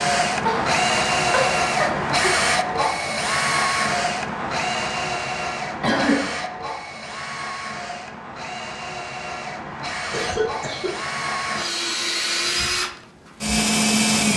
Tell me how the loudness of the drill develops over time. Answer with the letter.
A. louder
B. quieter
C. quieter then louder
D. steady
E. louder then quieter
C.